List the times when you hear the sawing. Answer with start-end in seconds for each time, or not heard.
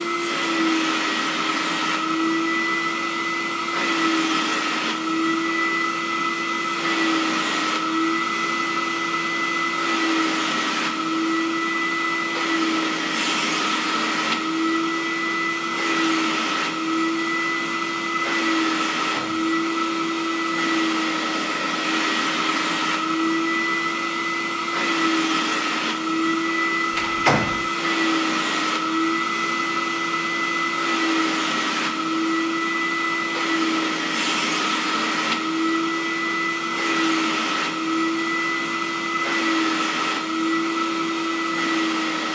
not heard.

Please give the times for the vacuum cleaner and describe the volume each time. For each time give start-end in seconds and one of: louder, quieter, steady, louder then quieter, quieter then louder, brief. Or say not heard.
0.0-42.3 steady.